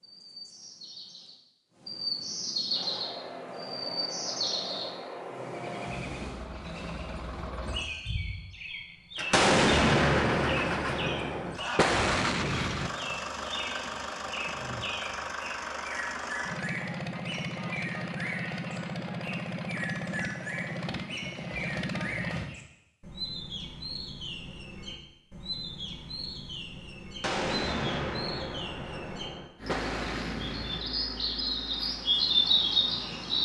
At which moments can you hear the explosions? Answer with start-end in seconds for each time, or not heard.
9.3-12.9, 27.2-30.8.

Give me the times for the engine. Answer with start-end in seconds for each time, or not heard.
2.7-22.6, 29.6-33.4.